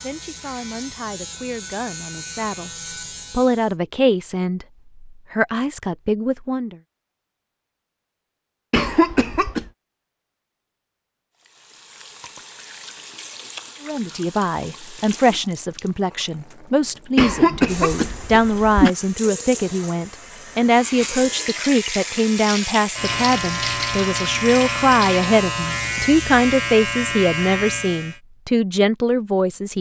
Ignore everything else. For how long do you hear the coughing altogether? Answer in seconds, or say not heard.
3 s.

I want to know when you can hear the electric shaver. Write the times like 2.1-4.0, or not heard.
0.0-3.8, 20.6-28.2.